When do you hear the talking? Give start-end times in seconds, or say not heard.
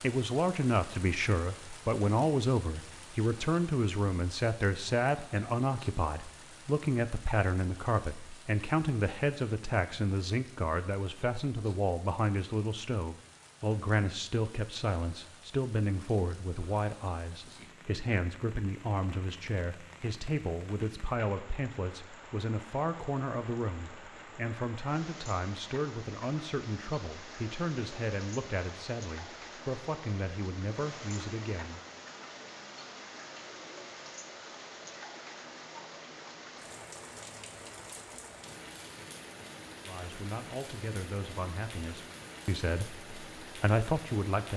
0.0-31.8, 39.9-44.5.